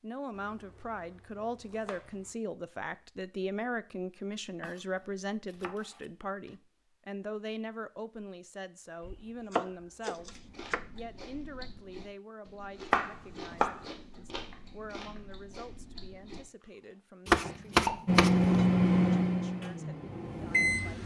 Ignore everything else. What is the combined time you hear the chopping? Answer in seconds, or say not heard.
8 s.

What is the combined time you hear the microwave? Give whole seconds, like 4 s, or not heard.
3 s.